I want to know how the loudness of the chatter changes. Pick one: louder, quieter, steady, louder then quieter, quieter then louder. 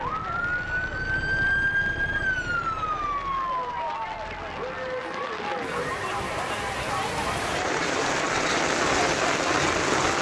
louder.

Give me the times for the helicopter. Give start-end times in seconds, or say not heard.
not heard.